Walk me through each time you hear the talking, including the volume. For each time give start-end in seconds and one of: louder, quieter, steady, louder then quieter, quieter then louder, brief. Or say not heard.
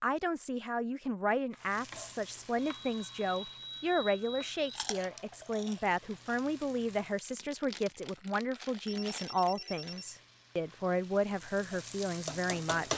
0.0-12.9 steady.